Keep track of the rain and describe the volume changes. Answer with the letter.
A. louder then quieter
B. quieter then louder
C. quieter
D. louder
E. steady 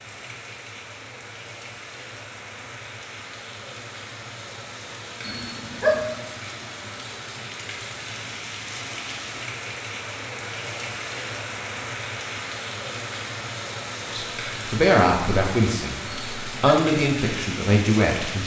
D.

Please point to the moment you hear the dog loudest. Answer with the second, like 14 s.
6 s.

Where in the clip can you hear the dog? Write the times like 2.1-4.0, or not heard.
5.2-6.0, 16.1-16.9.